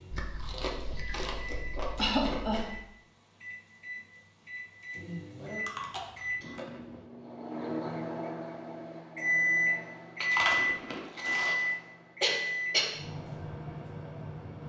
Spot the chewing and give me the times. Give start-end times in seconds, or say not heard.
0.1-2.8, 5.5-6.8, 10.2-11.7.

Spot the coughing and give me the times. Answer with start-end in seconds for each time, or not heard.
1.9-2.6, 12.2-12.9.